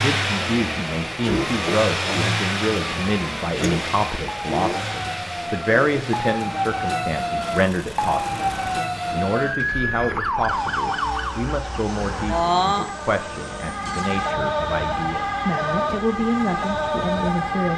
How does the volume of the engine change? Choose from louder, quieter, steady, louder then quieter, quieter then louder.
quieter.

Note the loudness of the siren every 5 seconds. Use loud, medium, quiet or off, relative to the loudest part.
medium, loud, loud, loud.